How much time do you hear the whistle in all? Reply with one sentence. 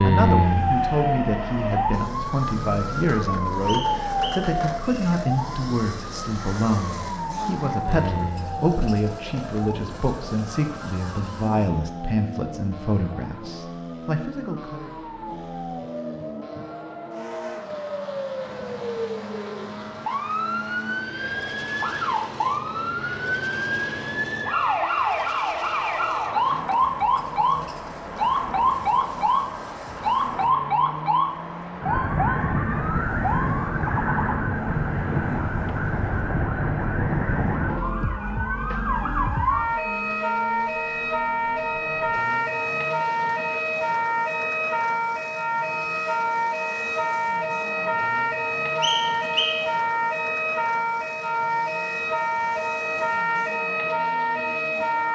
You can hear the whistle for 2 seconds altogether.